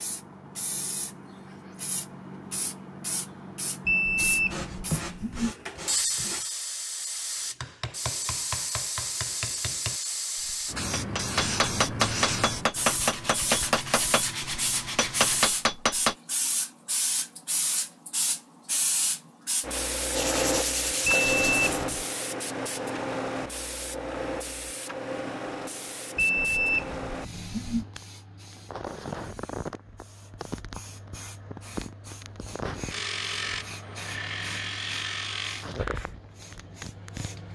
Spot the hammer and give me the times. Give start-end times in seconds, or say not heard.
7.6-16.1.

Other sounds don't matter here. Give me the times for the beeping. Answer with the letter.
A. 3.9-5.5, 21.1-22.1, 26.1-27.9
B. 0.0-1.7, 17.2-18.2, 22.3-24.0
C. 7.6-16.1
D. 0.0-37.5
A.